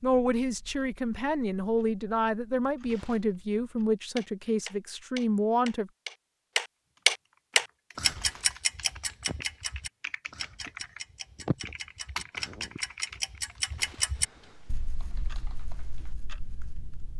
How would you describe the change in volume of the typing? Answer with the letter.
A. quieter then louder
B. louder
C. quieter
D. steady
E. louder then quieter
E.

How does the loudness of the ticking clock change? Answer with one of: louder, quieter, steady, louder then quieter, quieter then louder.
louder then quieter.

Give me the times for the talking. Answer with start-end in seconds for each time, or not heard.
0.0-5.9.